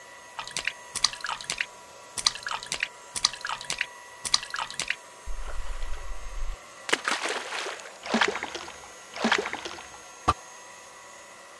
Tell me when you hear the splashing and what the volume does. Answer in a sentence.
The splashing can be heard from 0.3 to 10.3 s, getting quieter then louder.